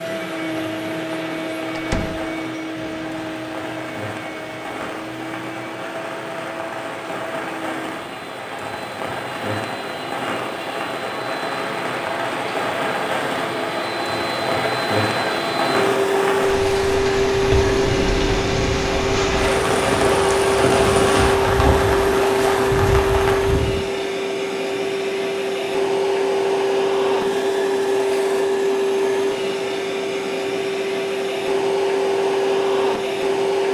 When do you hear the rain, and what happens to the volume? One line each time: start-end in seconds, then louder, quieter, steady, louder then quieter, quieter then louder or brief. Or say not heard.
0.0-23.8 louder.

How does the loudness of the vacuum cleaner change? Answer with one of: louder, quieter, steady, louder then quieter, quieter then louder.
louder.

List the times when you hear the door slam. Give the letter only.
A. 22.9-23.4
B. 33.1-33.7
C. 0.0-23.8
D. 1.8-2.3
D.